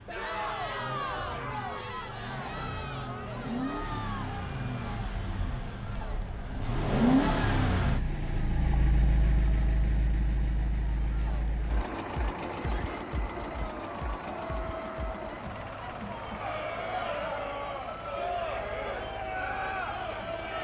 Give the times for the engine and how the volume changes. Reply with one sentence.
You can hear the engine from 0.0 to 20.6 s, getting louder then quieter.